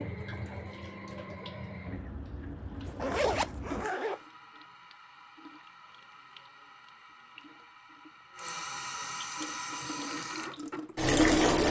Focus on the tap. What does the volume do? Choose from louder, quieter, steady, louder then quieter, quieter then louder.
quieter then louder.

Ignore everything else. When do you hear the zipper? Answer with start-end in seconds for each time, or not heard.
2.9-4.2.